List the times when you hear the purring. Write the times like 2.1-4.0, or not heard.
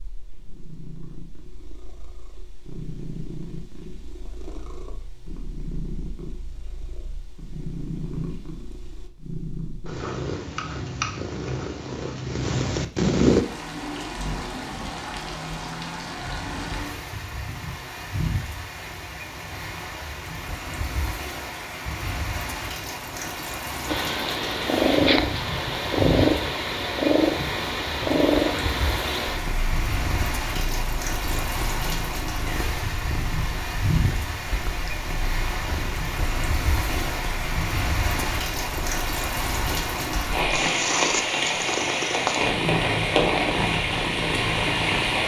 0.0-13.4, 23.9-45.2.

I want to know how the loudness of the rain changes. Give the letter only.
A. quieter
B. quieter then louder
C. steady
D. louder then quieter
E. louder
E.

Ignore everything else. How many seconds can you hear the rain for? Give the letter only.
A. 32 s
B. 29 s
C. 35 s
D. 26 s
A.